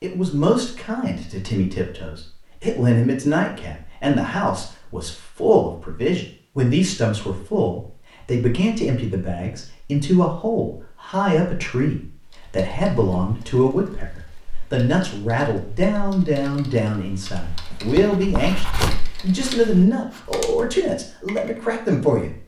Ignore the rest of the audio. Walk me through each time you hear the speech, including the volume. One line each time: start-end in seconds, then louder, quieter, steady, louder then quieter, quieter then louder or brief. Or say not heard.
0.0-22.4 steady.